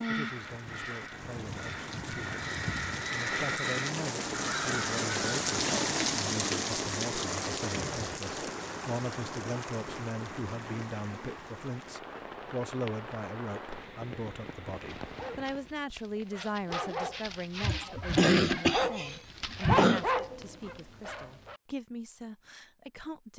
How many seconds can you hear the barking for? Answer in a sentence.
The barking can be heard for 7 seconds in total.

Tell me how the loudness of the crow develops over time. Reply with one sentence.
The volume of the crow goes up.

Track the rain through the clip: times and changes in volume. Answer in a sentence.
You can hear the rain from 0.0 to 15.8 s, getting louder then quieter.